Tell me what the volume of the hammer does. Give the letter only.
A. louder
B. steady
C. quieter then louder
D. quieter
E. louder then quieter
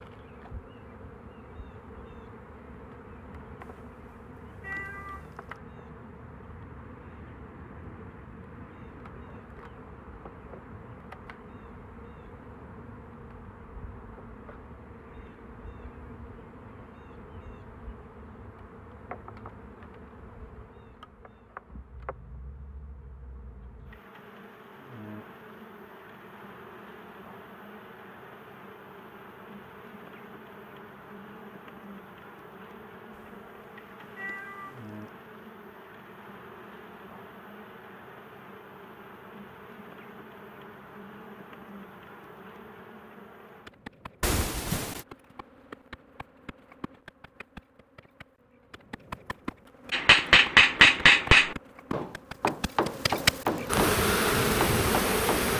D.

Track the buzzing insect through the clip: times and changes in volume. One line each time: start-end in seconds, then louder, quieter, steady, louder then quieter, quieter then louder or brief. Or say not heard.
0.0-55.5 louder.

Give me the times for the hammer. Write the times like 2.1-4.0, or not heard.
49.9-55.4.